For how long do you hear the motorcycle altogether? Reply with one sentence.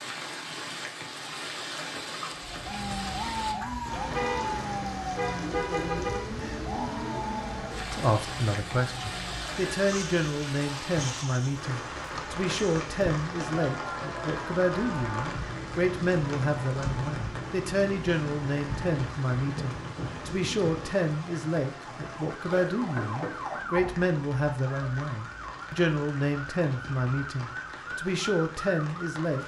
The motorcycle can't be heard in this clip.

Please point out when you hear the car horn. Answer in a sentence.
The car horn can be heard from 4.1 to 6.2 s.